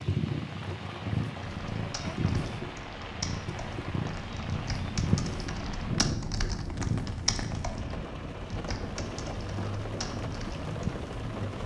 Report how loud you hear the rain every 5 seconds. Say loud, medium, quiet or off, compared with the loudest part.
medium, loud, loud.